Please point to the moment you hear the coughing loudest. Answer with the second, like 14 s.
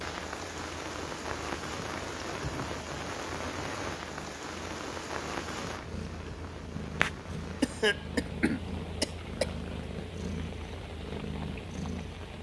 8 s.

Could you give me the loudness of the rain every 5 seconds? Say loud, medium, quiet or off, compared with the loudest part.
loud, medium, medium.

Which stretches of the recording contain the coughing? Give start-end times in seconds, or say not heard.
7.6-9.5.